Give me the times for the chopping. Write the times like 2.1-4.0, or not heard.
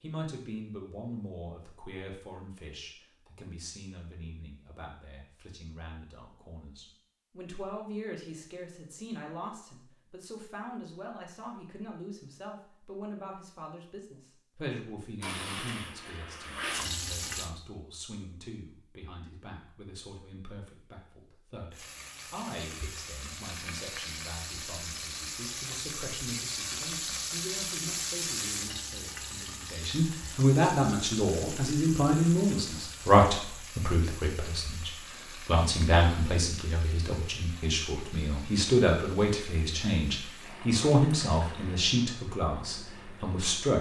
not heard.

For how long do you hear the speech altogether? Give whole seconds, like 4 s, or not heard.
44 s.